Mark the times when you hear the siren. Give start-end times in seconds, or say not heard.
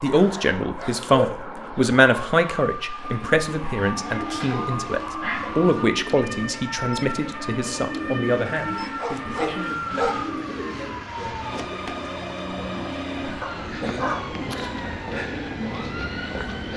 0.1-16.7.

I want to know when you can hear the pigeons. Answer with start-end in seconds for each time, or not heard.
3.0-11.0.